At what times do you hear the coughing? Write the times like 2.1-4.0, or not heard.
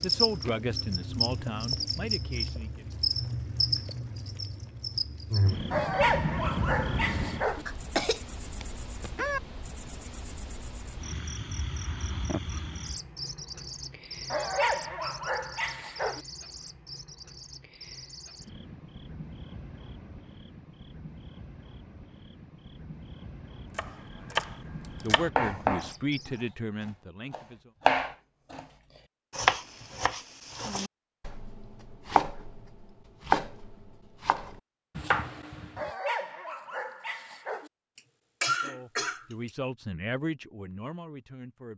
7.7-9.4, 38.0-39.5.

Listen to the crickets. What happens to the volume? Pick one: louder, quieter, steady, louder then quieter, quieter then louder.
quieter.